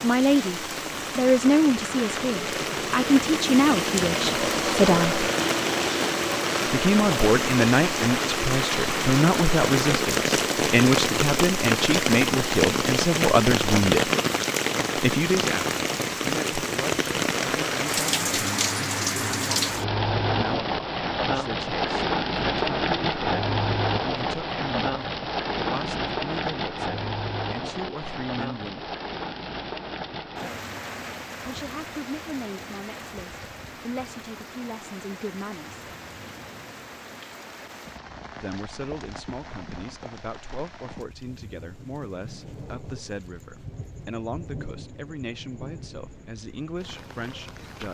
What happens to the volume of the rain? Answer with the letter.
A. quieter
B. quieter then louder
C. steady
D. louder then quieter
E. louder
A.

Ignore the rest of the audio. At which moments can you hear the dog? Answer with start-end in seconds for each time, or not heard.
not heard.